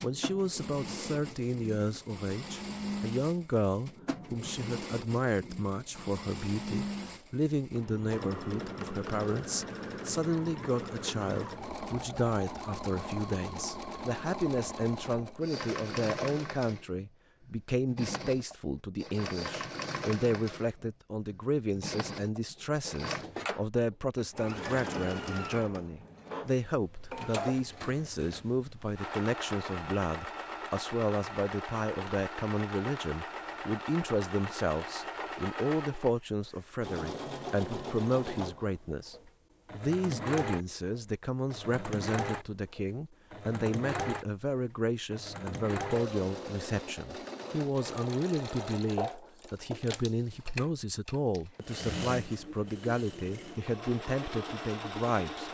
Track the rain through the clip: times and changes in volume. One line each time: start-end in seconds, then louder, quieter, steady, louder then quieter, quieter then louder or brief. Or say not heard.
not heard.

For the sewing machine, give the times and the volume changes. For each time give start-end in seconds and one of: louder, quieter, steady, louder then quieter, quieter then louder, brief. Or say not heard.
0.0-55.4 steady.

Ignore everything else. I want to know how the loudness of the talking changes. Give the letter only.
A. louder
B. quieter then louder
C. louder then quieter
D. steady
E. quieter
D.